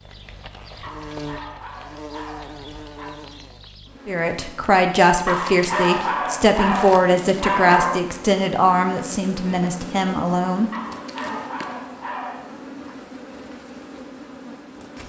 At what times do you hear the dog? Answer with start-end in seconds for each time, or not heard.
0.8-3.2, 5.2-8.1, 10.7-12.9.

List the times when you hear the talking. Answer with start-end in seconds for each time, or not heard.
4.0-10.7.